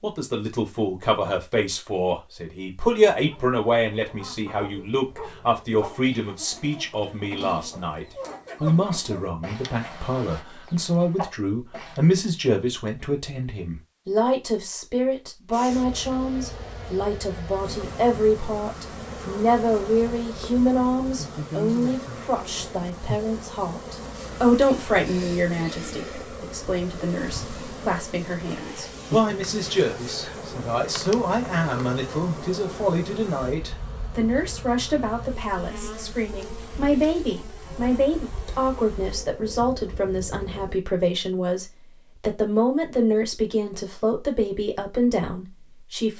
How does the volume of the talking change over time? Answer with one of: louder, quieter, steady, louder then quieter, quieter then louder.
steady.